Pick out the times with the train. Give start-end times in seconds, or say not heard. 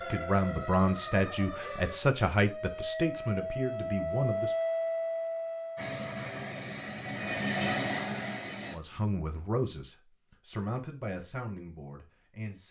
5.8-8.8.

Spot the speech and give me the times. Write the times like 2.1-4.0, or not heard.
0.0-4.5, 8.7-12.6.